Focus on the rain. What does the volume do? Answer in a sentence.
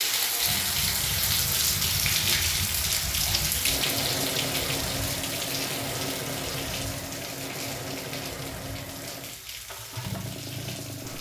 The loudness of the rain goes down.